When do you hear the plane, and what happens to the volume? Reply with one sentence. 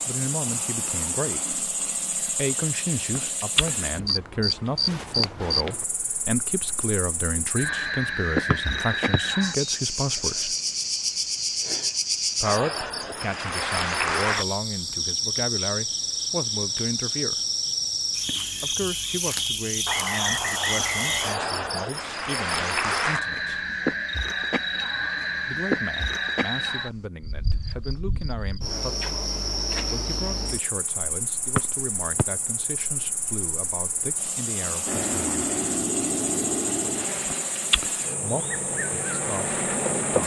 You can hear the plane from 34.9 to 40.2 s, getting quieter then louder.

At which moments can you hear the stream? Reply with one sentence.
You can't hear the stream here.